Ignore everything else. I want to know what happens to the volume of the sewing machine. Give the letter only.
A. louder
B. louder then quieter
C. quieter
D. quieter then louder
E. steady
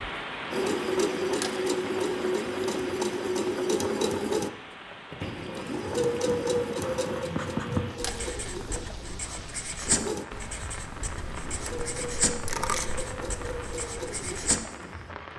C.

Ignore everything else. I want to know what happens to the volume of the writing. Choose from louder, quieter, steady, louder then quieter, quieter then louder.
louder then quieter.